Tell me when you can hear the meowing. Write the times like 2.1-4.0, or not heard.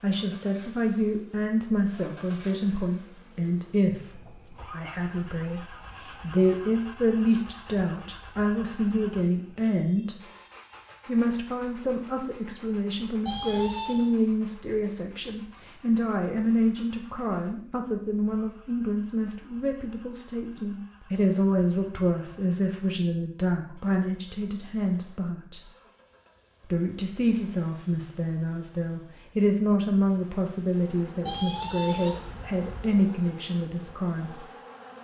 13.2-14.1, 31.2-33.0.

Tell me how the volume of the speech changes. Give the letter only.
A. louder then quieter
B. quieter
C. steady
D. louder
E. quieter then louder
C.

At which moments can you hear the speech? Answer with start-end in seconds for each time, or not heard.
0.0-10.2, 11.1-25.7, 26.7-34.5.